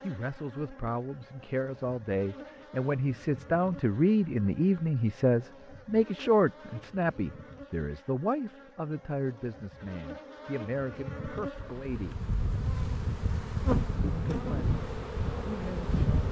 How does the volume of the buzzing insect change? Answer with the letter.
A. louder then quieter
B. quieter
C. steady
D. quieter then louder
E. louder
E.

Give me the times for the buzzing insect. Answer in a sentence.
The buzzing insect can be heard from 0.0 to 16.2 s.